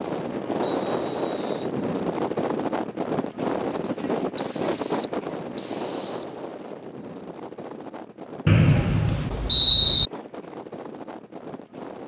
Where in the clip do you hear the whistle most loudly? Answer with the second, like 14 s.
10 s.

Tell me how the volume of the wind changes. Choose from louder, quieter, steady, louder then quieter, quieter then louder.
quieter.